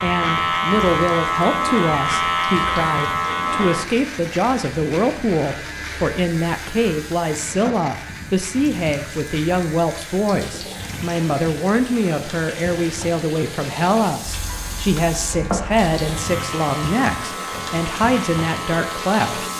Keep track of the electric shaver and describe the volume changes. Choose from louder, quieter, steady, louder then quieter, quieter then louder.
quieter then louder.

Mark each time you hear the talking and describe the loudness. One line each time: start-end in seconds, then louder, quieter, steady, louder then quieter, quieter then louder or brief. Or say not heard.
0.0-19.5 steady.